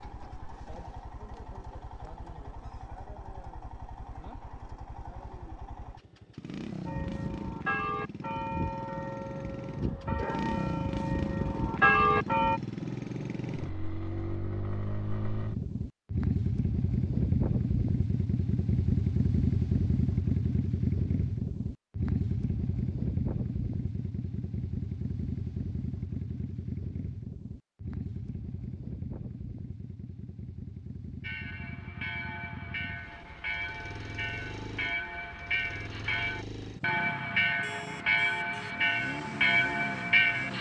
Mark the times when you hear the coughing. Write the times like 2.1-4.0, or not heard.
not heard.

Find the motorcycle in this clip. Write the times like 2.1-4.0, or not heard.
0.0-40.5.